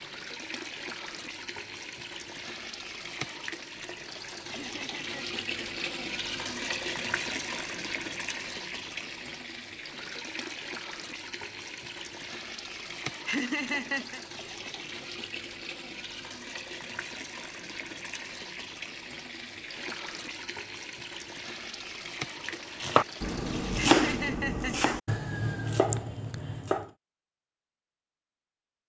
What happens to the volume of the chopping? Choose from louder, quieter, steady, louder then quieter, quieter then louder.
louder then quieter.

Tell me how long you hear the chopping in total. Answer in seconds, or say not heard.
4 s.